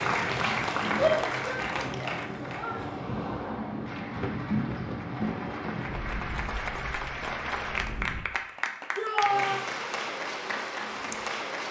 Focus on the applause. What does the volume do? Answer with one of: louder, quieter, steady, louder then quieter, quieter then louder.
quieter then louder.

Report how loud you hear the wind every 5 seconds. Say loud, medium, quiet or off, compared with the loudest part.
loud, loud, off.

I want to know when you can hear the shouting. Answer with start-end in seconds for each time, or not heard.
0.9-2.8, 8.9-9.7.